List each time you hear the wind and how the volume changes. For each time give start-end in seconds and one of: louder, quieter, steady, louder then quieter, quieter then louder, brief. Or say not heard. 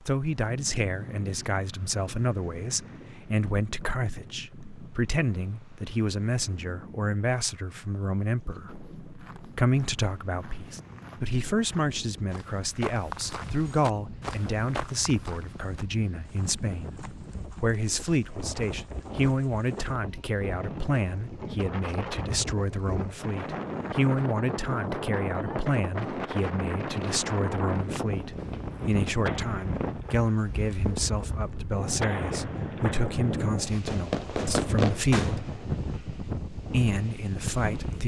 0.0-38.0 louder.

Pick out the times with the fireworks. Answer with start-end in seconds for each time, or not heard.
28.4-35.6.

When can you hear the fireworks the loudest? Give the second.
35 s.